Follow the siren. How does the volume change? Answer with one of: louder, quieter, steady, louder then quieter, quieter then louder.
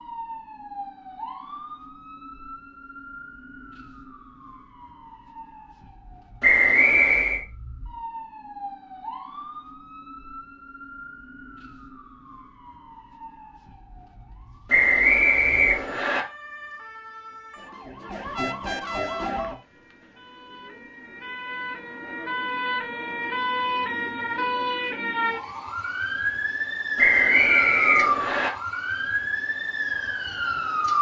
louder.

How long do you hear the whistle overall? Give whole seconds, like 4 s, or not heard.
4 s.